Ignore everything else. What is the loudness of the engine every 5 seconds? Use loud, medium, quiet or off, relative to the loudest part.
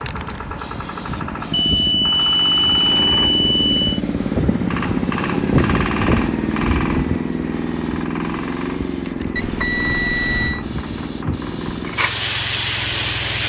loud, loud, medium.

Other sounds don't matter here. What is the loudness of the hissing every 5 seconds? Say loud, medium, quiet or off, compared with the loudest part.
medium, loud, loud.